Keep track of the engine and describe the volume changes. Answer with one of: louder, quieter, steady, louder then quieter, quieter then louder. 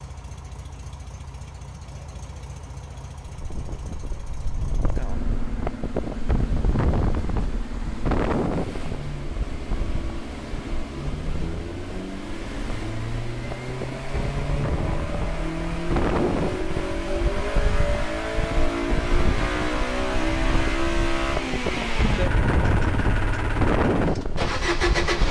louder.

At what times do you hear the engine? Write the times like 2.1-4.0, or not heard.
0.0-25.2.